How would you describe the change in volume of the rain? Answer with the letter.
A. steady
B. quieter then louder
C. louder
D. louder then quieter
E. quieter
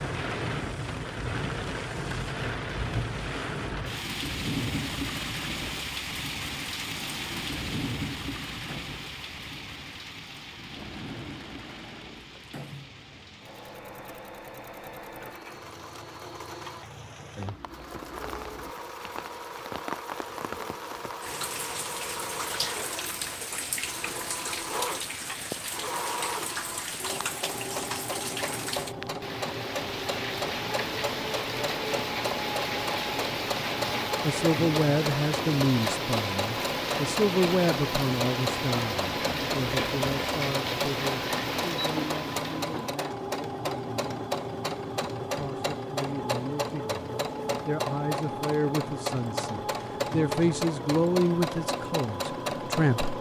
B.